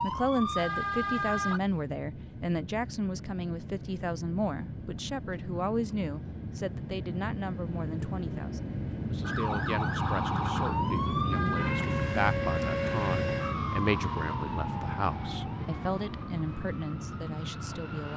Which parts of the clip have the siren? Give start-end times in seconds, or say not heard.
0.0-1.6, 9.2-18.1.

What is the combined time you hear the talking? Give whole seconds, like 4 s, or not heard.
18 s.